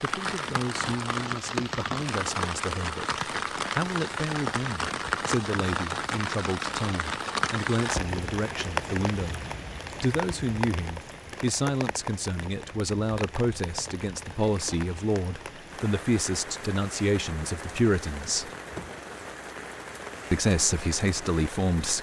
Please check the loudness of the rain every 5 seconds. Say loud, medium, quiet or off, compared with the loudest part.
loud, loud, medium, medium, medium.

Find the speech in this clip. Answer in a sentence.
The speech can be heard from 0.0 to 9.4 s, from 10.0 to 18.5 s and from 20.3 to 21.9 s.